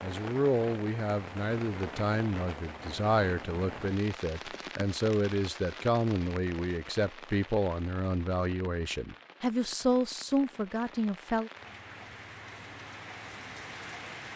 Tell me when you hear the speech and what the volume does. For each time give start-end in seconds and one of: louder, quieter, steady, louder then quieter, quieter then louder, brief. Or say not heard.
0.0-11.5 steady.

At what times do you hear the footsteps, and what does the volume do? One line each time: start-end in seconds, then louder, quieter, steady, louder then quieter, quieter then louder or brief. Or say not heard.
not heard.